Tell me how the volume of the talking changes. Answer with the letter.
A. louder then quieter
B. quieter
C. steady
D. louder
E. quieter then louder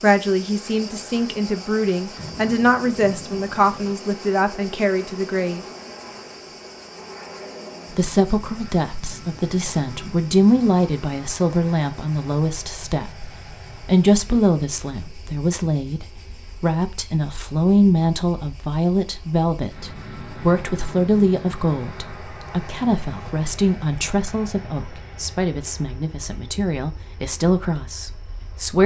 C.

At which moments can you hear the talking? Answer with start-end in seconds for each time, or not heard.
0.0-5.6, 8.0-28.8.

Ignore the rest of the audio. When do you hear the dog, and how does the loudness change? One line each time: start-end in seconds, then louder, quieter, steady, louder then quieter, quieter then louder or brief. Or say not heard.
not heard.